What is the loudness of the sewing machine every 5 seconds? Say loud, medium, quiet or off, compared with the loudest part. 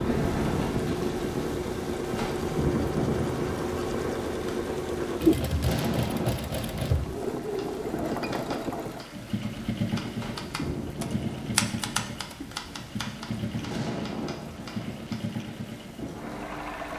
loud, loud, medium, medium.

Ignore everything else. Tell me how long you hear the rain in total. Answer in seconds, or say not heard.
17 s.